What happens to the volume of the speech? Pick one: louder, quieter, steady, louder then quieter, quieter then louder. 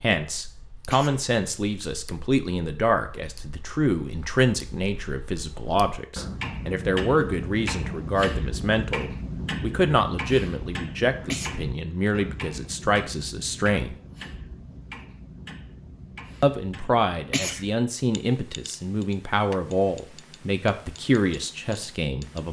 steady.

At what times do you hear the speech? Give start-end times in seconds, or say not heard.
0.0-13.9, 16.4-22.4.